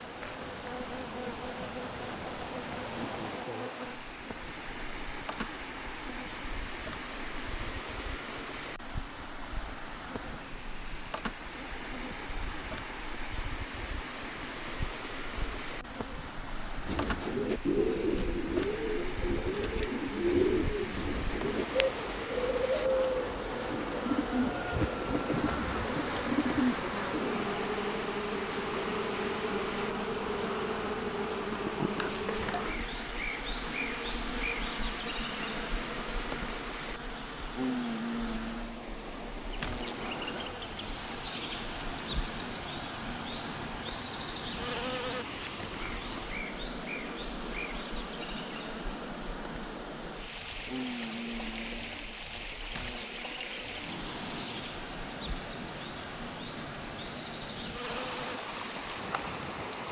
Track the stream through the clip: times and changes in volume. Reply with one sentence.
You can hear the stream from 0.0 to 59.8 s, at a steady volume.